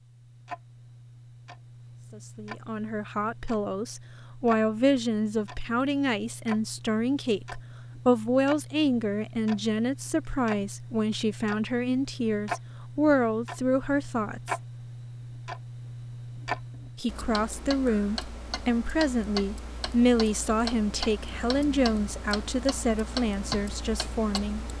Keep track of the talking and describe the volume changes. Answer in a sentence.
The volume of the talking stays about the same.